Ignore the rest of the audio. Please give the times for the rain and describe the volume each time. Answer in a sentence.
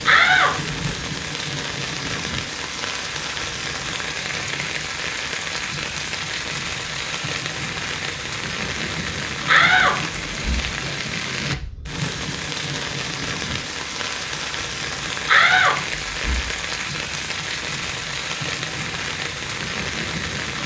You can hear the rain from 0.0 to 20.6 s, at a steady volume.